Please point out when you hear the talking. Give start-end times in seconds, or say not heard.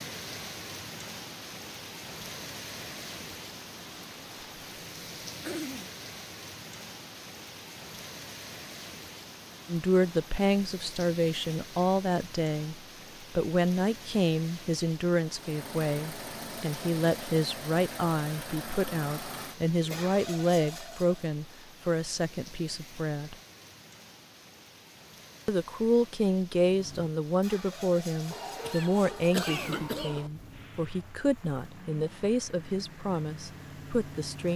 9.7-23.4, 25.4-34.5.